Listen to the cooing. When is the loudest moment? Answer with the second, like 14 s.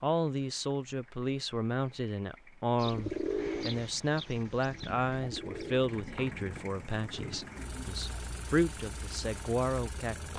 3 s.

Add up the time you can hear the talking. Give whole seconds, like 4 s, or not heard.
10 s.